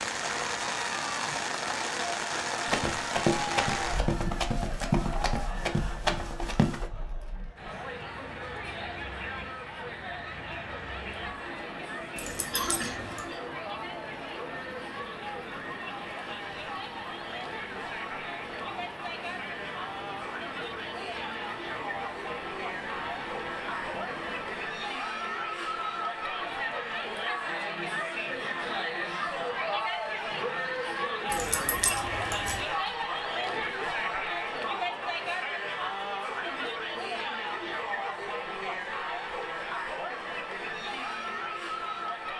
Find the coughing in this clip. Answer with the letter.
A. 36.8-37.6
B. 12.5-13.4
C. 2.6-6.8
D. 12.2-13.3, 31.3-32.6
B.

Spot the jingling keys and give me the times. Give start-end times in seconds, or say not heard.
12.2-13.3, 31.3-32.6.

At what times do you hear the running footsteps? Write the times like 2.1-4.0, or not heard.
2.6-6.8.